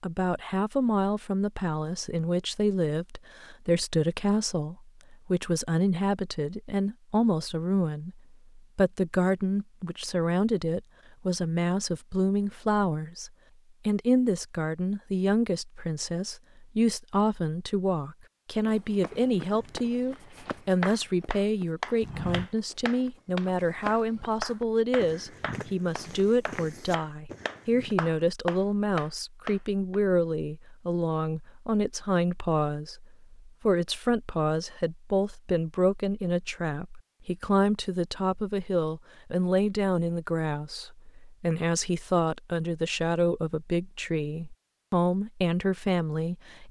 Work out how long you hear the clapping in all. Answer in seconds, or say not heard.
10 s.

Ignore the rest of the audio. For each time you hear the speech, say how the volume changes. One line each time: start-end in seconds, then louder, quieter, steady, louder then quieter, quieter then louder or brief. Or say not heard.
0.0-46.6 steady.